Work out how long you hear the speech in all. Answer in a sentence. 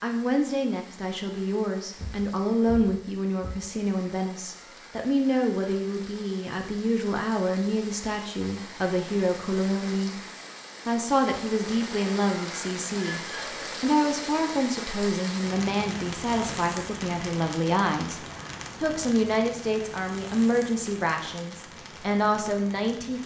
You can hear the speech for 21 seconds altogether.